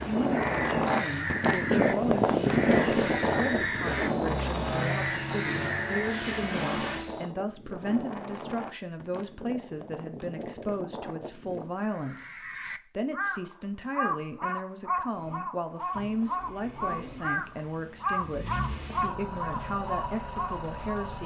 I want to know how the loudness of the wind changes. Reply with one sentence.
The loudness of the wind goes down.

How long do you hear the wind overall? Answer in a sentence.
You can hear the wind for 12 seconds altogether.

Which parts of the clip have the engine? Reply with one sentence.
You can hear the engine from 0.0 to 7.3 s and from 15.1 to 21.2 s.